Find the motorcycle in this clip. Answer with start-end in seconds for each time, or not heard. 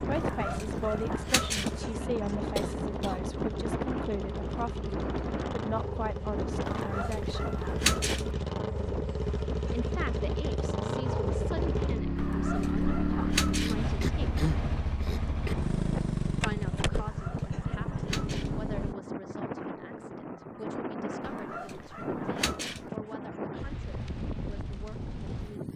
0.0-18.9.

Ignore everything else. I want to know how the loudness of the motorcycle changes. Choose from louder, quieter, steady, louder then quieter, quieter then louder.
louder.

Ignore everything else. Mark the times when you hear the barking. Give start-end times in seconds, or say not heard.
0.1-1.8, 6.7-8.3, 12.2-13.8, 16.9-18.6, 21.2-22.9.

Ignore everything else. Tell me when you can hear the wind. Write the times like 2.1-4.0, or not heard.
0.0-25.7.